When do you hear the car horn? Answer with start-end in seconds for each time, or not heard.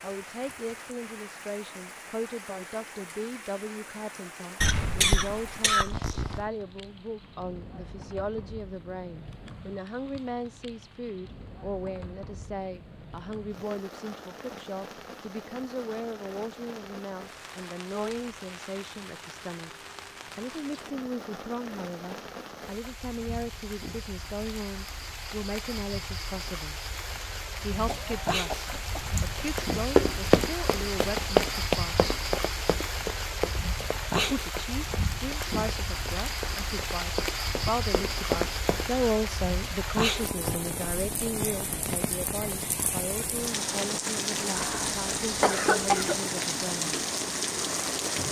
not heard.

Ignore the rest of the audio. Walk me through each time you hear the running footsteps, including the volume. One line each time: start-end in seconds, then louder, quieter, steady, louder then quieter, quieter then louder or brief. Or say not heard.
29.6-38.9 quieter then louder.